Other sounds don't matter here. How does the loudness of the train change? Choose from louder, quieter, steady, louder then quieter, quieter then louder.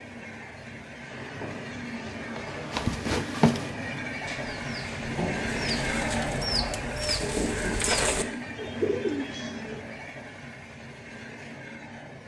louder then quieter.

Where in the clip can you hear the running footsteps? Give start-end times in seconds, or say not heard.
1.4-3.7.